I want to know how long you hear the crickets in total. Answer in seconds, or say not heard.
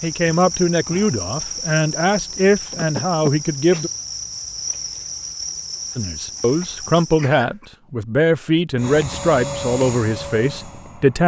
7 s.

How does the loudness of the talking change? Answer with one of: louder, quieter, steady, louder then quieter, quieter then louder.
steady.